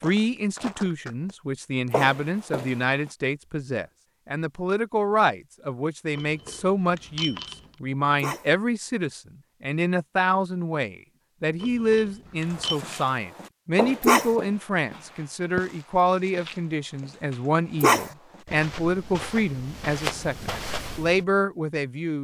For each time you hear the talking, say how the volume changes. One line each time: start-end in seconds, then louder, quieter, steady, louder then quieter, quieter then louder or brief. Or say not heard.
0.0-22.1 steady.